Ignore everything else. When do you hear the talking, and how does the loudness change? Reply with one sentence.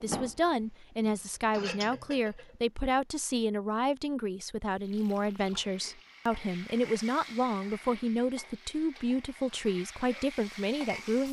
You can hear the talking from 0.0 to 11.2 s, at a steady volume.